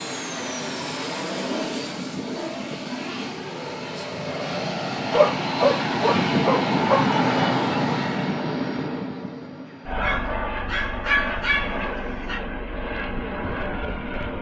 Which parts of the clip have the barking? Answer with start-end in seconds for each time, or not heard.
1.4-2.8, 5.1-7.0, 10.0-12.4.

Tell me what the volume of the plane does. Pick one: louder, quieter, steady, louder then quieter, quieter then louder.
louder then quieter.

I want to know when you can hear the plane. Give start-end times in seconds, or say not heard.
0.0-14.3.